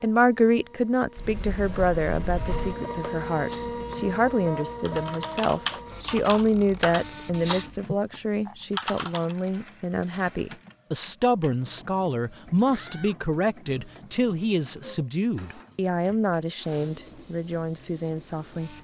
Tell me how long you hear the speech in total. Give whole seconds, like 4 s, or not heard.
19 s.